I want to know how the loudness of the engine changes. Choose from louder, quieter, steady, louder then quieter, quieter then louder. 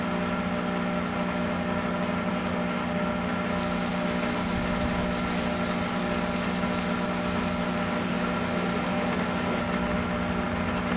steady.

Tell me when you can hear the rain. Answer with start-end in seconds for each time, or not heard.
3.5-10.9.